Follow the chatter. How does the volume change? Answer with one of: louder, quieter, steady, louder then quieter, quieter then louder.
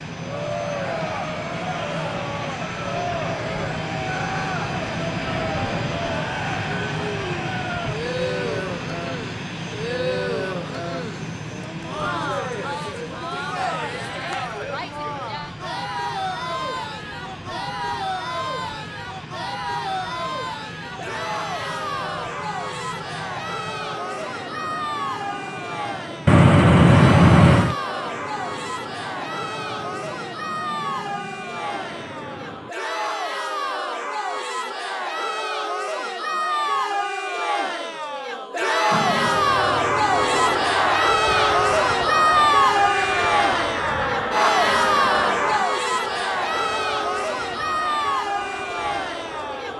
louder.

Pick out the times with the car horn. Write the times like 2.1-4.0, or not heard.
26.2-27.8.